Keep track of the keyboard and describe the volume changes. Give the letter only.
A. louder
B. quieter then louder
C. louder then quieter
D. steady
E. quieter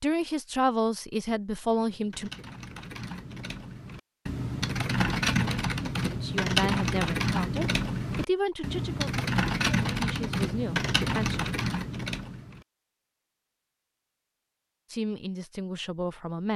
A.